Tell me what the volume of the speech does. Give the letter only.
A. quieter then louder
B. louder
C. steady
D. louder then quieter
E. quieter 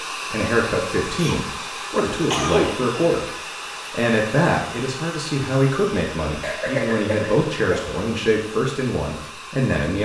C.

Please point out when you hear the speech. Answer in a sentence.
The speech can be heard from 0.1 to 3.2 s and from 3.9 to 10.0 s.